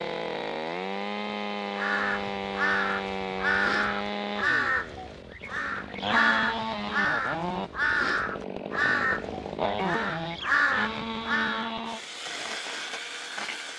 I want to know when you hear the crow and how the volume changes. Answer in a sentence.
You can hear the crow from 1.7 to 11.7 s, at a steady volume.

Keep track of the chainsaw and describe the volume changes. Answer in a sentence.
The loudness of the chainsaw stays about the same.